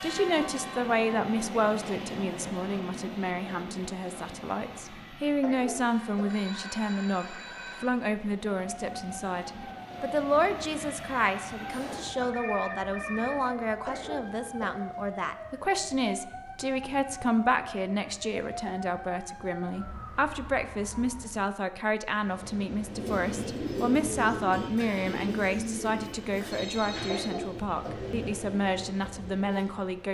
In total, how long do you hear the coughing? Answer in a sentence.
You can hear the coughing for 3 seconds altogether.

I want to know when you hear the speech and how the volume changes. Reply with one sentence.
You can hear the speech from 0.0 to 30.0 s, at a steady volume.